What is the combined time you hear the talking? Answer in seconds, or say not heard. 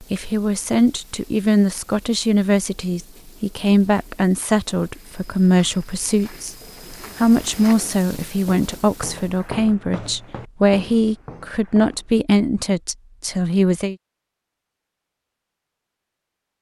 13 s.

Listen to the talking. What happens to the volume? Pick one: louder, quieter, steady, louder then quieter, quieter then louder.
steady.